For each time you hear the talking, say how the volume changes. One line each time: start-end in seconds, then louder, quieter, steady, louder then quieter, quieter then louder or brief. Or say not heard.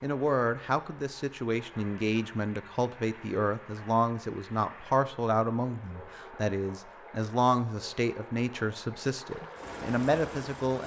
0.0-10.8 steady.